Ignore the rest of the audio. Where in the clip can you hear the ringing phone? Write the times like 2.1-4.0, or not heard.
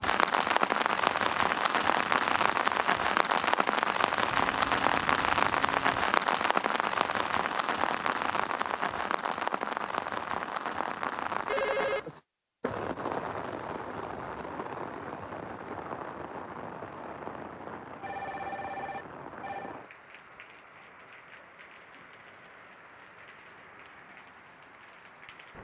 4.2-6.0, 11.4-12.1, 18.0-19.8.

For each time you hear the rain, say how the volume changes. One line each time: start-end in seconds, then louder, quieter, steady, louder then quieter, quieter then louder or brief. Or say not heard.
0.0-25.5 quieter.